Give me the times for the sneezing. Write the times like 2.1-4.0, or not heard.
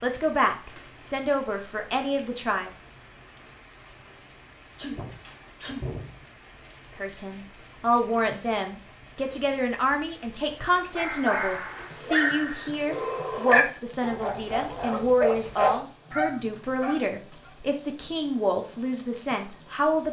4.8-6.2.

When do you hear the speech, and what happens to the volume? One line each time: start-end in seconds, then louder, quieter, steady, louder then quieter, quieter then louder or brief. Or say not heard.
0.0-2.7 brief
7.0-20.0 steady.